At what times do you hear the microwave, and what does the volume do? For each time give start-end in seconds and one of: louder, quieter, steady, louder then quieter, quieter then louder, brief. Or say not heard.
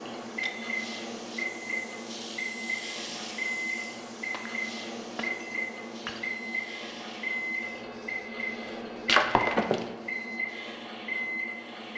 0.0-11.9 steady.